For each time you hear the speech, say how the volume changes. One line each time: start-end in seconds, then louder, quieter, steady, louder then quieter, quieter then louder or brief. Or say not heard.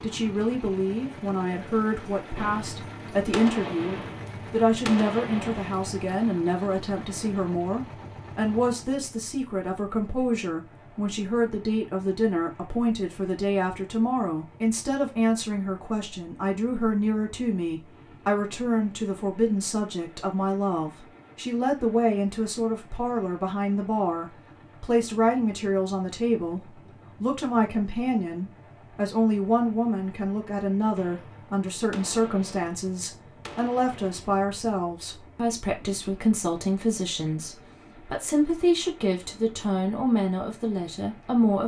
0.0-41.6 steady.